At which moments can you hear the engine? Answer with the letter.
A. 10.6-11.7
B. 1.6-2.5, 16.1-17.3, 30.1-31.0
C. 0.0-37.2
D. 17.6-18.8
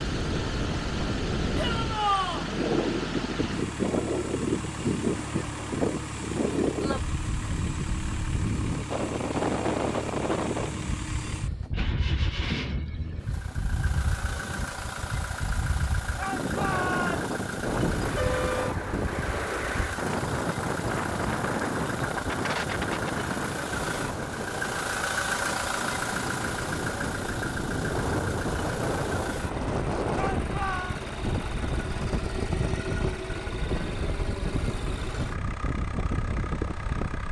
C.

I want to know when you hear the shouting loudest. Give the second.
2 s.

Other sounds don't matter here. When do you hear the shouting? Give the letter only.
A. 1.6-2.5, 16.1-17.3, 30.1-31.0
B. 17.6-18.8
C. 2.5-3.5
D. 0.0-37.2
A.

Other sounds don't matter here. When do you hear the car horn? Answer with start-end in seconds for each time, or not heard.
17.6-18.8.